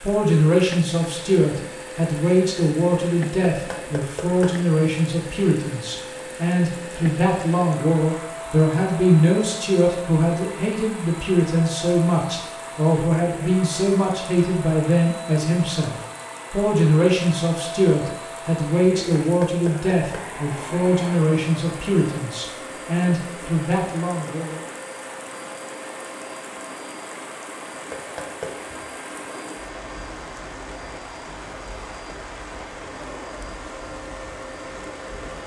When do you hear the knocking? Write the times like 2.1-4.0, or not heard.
3.5-4.5, 19.2-20.2, 27.9-28.6.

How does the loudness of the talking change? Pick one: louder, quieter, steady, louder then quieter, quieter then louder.
steady.